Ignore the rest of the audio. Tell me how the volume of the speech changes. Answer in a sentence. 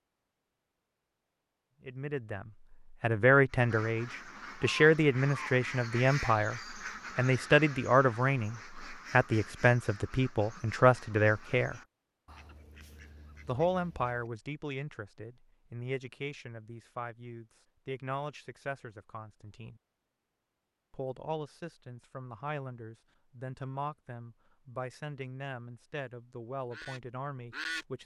The volume of the speech goes down.